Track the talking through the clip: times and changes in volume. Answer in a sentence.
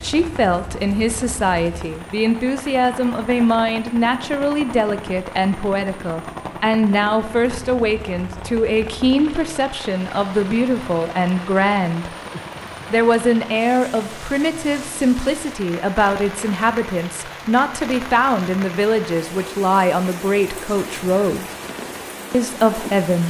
You can hear the talking from 0.0 to 12.1 s, at a steady volume; from 12.9 to 21.4 s, at a steady volume; and briefly from 22.3 to 23.2 s.